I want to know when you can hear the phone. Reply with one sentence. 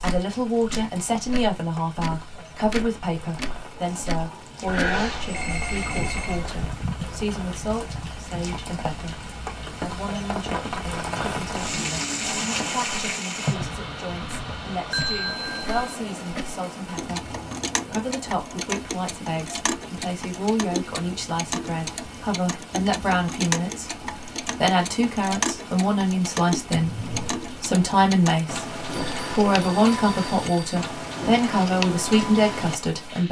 The phone can be heard from 4.7 to 6.7 s, from 14.9 to 15.9 s and from 28.9 to 30.8 s.